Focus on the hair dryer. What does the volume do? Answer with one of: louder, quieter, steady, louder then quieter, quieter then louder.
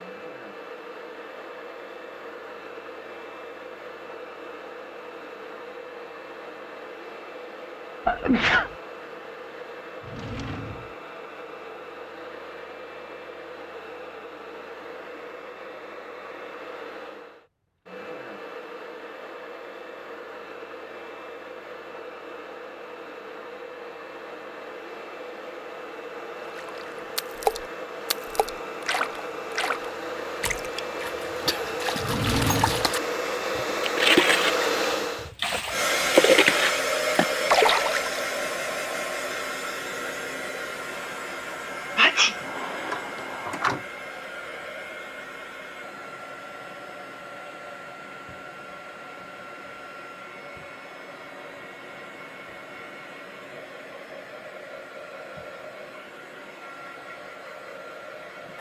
louder then quieter.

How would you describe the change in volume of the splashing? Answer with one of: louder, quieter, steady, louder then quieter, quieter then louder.
quieter then louder.